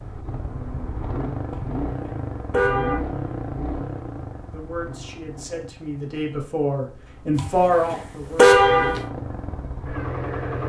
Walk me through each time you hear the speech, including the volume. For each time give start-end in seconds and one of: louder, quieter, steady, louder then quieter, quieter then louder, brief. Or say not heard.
4.5-8.6 louder.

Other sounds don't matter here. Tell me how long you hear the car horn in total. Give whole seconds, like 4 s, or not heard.
3 s.